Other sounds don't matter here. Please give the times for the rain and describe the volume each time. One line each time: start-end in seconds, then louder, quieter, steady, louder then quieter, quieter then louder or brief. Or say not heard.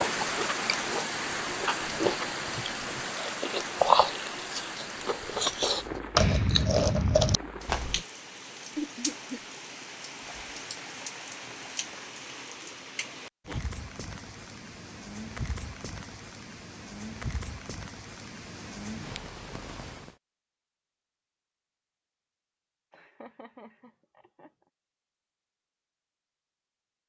0.0-20.1 quieter.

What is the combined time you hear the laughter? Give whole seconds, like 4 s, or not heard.
2 s.